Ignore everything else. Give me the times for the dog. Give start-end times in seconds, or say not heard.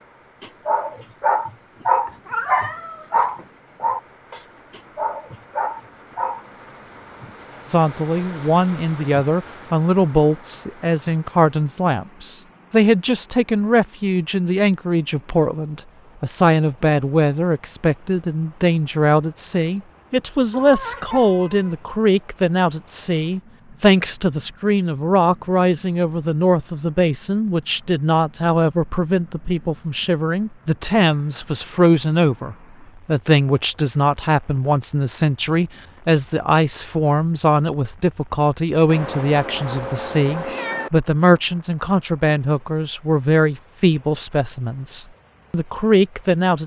0.4-6.5.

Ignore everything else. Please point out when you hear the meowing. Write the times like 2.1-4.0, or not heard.
2.0-3.5, 20.5-21.8, 38.9-40.9.